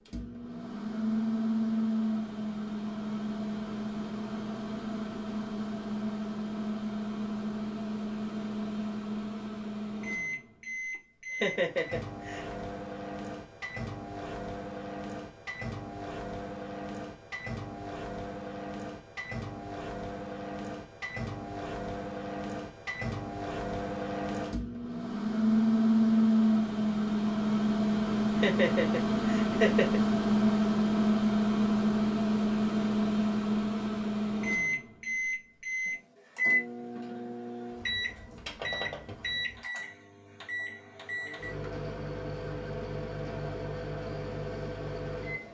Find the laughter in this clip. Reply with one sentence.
The laughter can be heard from 11.3 to 12.6 s and from 28.4 to 30.0 s.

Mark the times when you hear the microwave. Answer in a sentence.
The microwave can be heard from 0.1 to 45.4 s.